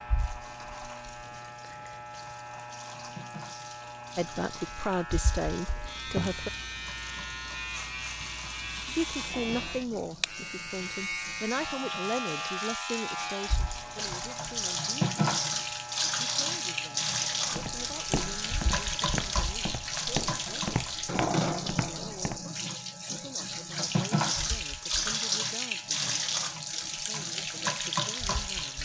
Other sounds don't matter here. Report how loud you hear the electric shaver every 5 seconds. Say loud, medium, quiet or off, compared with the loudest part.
medium, loud, loud, medium, quiet, quiet.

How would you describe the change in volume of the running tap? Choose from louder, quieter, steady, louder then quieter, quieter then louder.
louder.